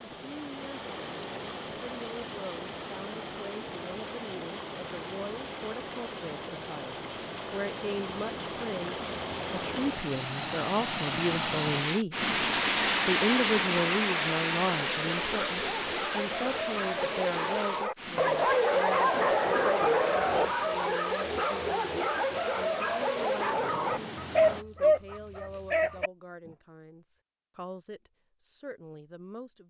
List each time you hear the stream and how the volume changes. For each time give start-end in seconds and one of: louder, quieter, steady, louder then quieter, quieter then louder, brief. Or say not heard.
0.0-24.6 louder then quieter.